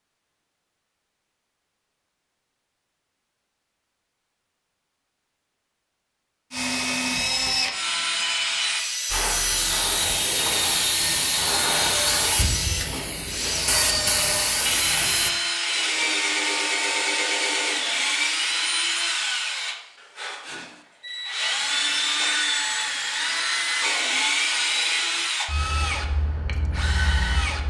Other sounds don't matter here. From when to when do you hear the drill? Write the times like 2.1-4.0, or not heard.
6.5-27.6.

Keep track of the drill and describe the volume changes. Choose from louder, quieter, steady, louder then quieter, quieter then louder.
steady.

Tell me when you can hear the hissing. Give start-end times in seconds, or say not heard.
9.1-15.3.